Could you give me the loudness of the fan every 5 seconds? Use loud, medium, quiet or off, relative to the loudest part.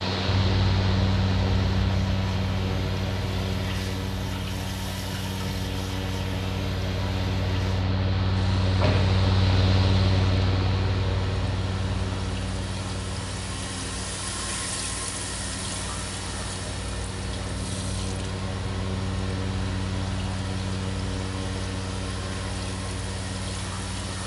loud, loud, loud, medium, medium.